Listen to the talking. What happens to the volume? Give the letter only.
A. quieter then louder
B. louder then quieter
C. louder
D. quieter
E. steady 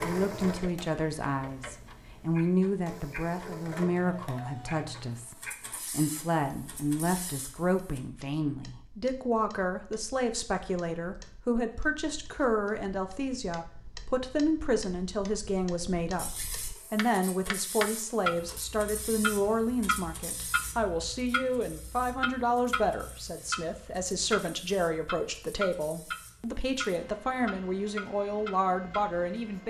E.